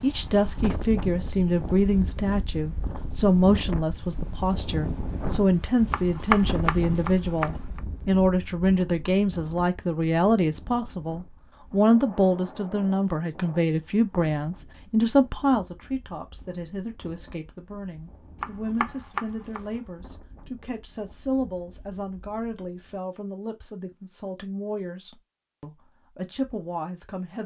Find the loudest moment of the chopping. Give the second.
6 s.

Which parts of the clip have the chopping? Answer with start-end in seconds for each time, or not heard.
5.9-7.8, 18.4-19.8.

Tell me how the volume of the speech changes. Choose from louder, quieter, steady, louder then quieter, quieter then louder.
quieter.